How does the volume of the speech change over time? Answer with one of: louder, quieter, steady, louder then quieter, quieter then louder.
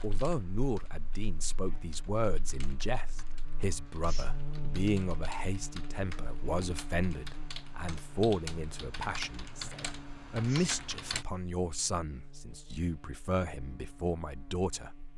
steady.